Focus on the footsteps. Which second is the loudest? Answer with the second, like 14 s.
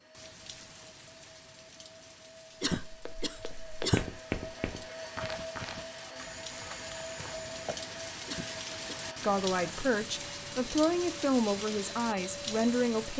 4 s.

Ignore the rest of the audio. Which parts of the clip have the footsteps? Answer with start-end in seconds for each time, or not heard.
2.9-7.8.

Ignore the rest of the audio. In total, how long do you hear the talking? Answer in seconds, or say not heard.
4 s.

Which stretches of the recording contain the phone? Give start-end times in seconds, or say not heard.
not heard.